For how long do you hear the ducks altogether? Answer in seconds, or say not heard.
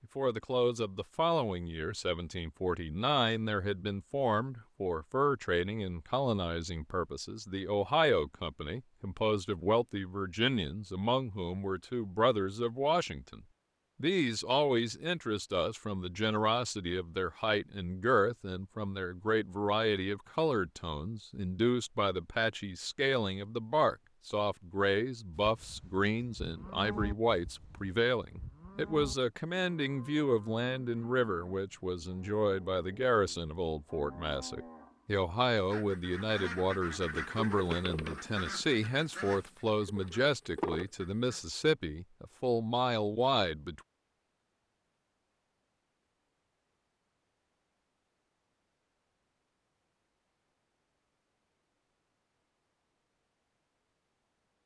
6 s.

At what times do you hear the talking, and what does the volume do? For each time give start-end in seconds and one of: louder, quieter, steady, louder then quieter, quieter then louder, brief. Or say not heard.
0.0-43.8 steady.